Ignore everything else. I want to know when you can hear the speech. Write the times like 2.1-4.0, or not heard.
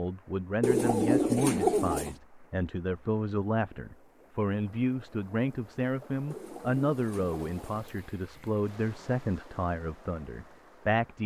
0.0-11.2.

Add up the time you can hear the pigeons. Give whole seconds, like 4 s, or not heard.
3 s.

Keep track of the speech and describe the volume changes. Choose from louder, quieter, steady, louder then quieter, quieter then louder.
steady.